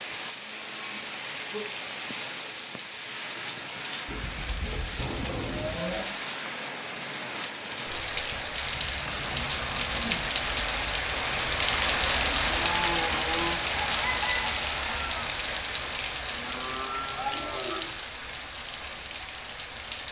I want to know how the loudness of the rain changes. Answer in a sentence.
The loudness of the rain goes up, then down.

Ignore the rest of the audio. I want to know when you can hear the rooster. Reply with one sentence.
You can hear the rooster from 13.7 to 15.3 s.